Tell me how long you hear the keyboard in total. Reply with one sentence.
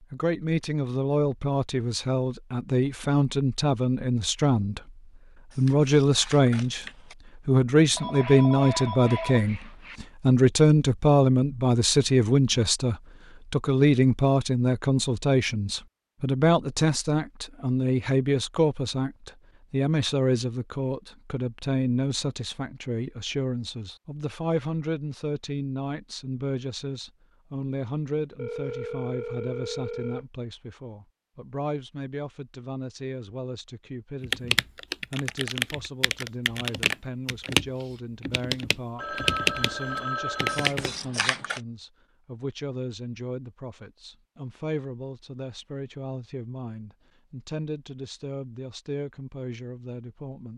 The keyboard can be heard for 7 seconds in total.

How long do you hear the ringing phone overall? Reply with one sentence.
You can hear the ringing phone for 6 seconds altogether.